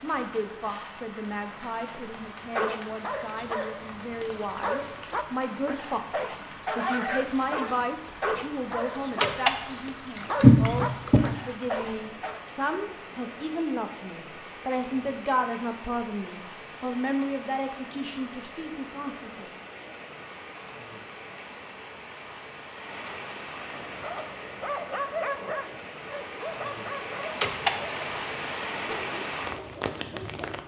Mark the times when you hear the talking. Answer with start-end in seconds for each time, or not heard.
0.0-19.5.